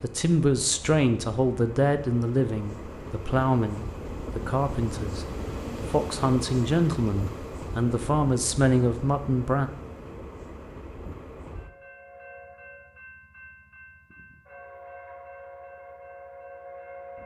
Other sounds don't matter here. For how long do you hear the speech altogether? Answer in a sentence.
The speech can be heard for 10 seconds in total.